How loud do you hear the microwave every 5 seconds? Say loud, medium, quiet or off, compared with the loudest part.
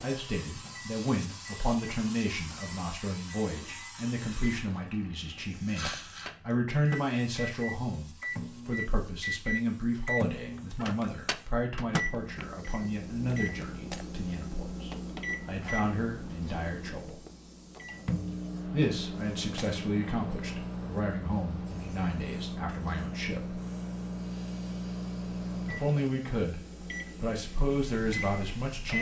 quiet, loud, loud, loud, loud, loud.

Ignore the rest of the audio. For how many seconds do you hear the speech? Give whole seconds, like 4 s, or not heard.
25 s.